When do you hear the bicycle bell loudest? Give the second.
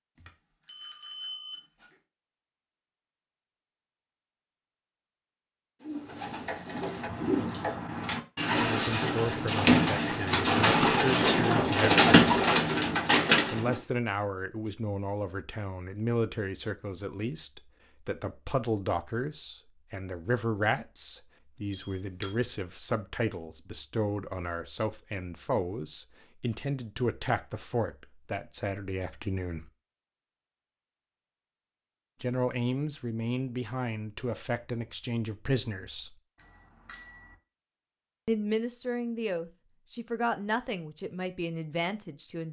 1 s.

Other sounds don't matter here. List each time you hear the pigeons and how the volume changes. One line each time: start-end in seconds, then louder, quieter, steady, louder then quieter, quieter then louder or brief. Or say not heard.
5.8-13.8 louder.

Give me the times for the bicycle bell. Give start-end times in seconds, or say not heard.
0.1-1.9, 21.8-22.4, 36.4-37.4.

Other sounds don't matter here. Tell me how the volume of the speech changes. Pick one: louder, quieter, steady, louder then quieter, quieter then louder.
steady.